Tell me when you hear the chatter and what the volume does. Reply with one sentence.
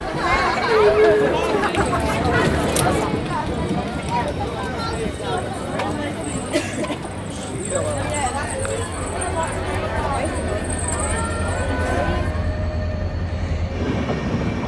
You can hear the chatter from 0.0 to 12.6 s, getting quieter.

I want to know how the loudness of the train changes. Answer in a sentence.
The loudness of the train goes down, then up.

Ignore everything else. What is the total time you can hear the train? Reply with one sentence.
The train can be heard for 13 seconds in total.